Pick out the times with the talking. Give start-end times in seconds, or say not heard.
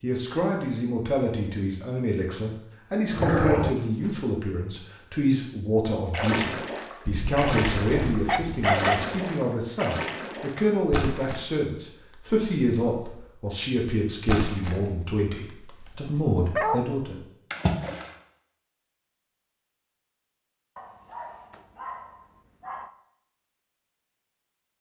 0.0-17.2.